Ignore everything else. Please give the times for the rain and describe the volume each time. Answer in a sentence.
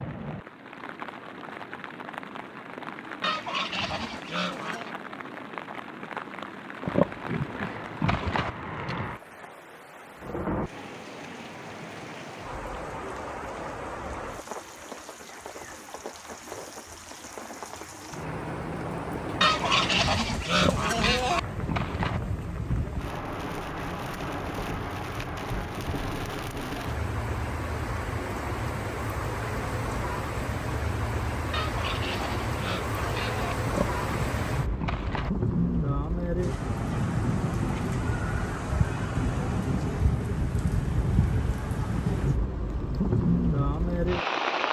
The rain can be heard from 0.0 to 44.6 s, getting louder.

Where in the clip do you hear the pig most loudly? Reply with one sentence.
The volume of the pig peaks at 7 seconds.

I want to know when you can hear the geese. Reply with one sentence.
You can hear the geese from 3.2 to 4.9 s, from 19.4 to 21.4 s and from 31.5 to 33.5 s.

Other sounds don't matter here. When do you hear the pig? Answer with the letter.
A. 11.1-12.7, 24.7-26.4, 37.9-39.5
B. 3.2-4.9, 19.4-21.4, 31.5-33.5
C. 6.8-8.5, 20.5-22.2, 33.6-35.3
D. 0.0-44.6
C.